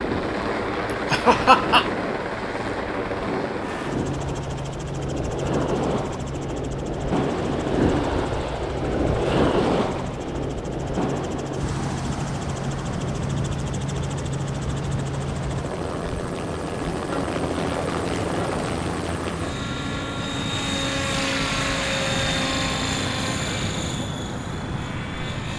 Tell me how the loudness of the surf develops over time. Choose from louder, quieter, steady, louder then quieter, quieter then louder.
louder then quieter.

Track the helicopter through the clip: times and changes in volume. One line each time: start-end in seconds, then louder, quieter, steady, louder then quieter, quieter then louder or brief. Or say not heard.
0.0-25.5 quieter then louder.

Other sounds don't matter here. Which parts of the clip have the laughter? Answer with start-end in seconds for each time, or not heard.
1.1-1.9.